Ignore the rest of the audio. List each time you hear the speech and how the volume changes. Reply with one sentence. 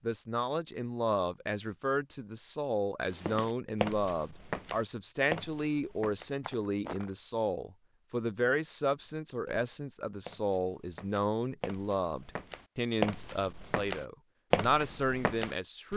You can hear the speech from 0.0 to 15.9 s, at a steady volume.